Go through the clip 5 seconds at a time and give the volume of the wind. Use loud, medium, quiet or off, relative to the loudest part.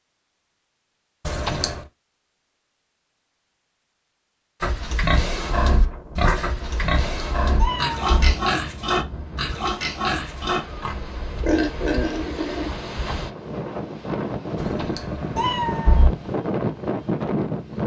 off, quiet, medium, loud.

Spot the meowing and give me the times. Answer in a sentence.
You can hear the meowing from 1.2 to 1.8 s, from 7.0 to 8.3 s and from 14.6 to 16.1 s.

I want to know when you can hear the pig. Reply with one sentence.
You can hear the pig from 4.6 to 12.7 s.